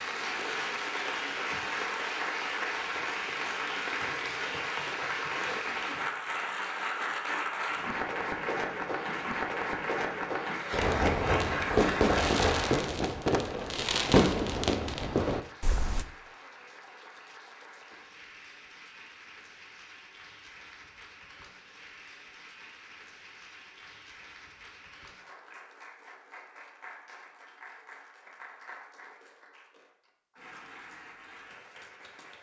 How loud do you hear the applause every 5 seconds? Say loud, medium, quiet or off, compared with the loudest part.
loud, loud, loud, quiet, quiet, quiet, quiet.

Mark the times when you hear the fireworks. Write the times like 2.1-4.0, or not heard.
10.7-16.1.